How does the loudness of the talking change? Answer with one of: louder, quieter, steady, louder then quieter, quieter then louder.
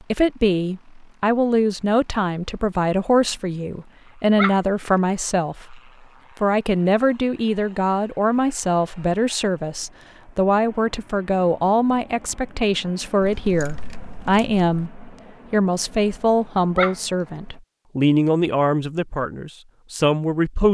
steady.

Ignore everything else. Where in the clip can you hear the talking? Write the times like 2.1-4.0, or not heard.
0.1-5.8, 6.4-20.6.